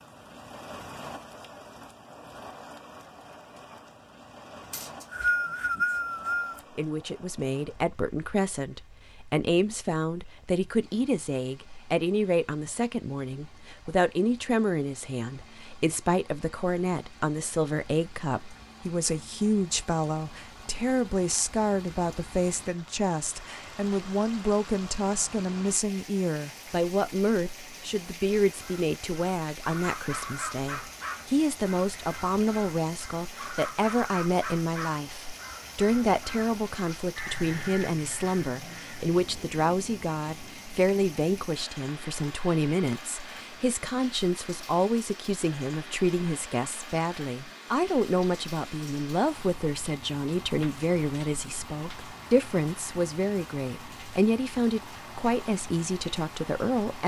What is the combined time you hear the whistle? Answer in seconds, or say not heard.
2 s.